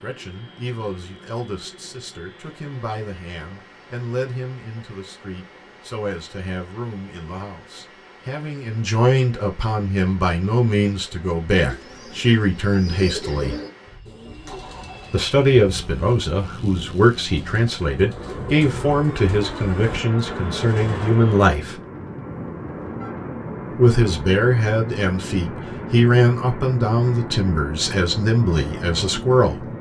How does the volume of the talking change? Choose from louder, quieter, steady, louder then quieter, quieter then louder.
louder.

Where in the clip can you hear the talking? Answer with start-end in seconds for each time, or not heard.
0.0-13.6, 15.1-21.8, 23.8-29.6.